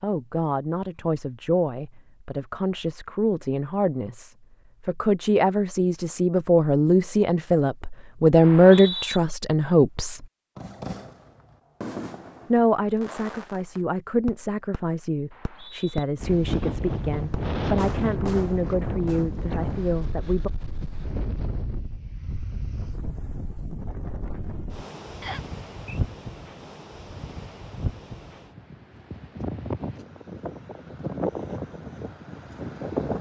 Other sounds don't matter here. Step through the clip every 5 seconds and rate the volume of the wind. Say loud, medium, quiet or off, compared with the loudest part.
off, off, off, loud, medium, medium, loud.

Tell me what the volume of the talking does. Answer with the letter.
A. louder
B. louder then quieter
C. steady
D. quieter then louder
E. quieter
B.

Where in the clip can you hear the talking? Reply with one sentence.
The talking can be heard from 0.0 to 10.2 s and from 12.5 to 20.5 s.